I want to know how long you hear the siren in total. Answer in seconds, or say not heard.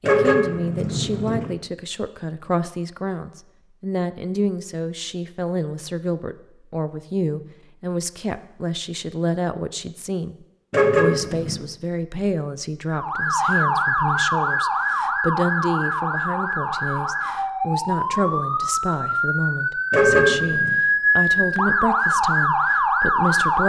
11 s.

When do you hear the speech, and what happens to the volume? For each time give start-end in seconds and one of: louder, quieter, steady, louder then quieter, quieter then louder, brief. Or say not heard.
0.0-23.6 steady.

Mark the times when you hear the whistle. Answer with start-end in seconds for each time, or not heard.
not heard.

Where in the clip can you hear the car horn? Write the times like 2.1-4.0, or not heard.
0.0-1.5, 10.7-11.7, 19.9-20.8.